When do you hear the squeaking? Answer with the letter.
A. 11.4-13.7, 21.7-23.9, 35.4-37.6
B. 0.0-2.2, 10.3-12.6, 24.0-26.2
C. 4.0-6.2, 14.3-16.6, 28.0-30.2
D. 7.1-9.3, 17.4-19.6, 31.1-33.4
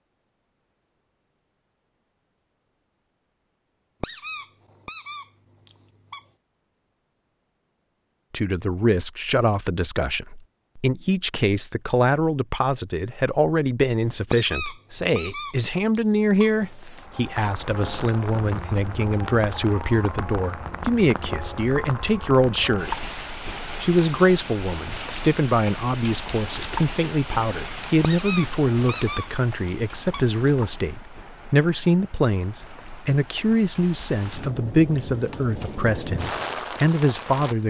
C.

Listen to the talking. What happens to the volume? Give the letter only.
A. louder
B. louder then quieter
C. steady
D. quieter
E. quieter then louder
C.